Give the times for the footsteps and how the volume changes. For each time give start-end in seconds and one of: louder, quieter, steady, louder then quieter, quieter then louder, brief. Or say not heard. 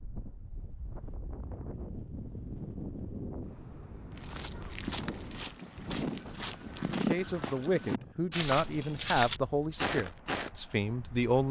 4.1-10.5 louder.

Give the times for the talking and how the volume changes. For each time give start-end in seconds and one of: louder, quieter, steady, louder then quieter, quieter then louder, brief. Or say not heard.
6.9-11.4 steady.